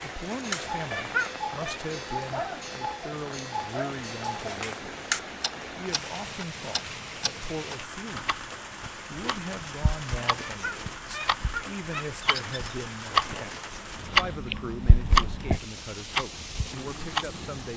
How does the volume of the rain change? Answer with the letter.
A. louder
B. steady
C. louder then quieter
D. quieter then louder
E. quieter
B.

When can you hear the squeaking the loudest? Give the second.
1 s.